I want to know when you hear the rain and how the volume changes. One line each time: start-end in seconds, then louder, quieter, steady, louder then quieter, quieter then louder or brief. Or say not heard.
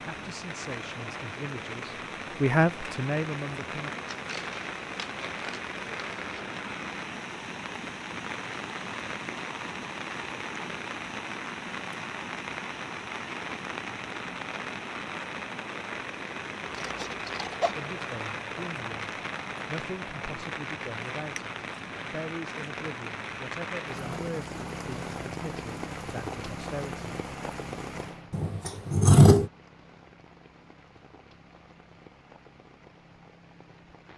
0.0-34.1 quieter.